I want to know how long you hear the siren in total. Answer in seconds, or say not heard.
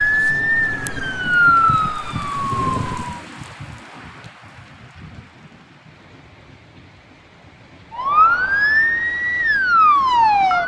6 s.